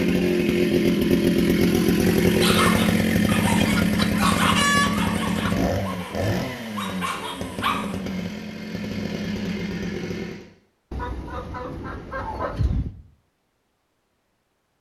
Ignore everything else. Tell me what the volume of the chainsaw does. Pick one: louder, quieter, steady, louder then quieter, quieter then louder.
quieter.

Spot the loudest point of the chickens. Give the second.
5 s.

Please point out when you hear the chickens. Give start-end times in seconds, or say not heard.
3.5-5.5, 10.9-12.9.